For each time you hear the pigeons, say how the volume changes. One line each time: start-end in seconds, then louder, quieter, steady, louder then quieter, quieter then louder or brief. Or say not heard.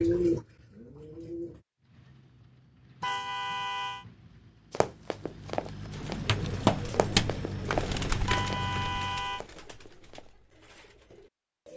0.0-1.6 brief
5.9-11.7 quieter.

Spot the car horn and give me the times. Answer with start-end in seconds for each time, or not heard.
3.0-4.0, 8.2-9.4.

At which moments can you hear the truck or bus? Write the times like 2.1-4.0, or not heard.
1.8-9.3.